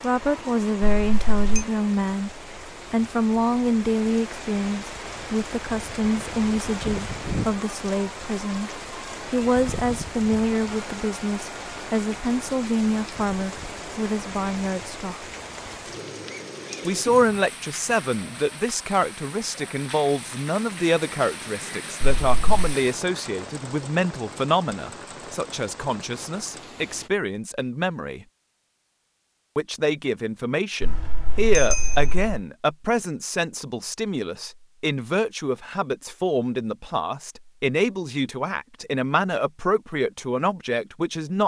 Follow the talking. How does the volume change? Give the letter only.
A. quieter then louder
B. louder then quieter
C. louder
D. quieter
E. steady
E.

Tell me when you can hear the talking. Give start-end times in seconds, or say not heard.
0.0-15.2, 16.9-28.2, 29.6-41.4.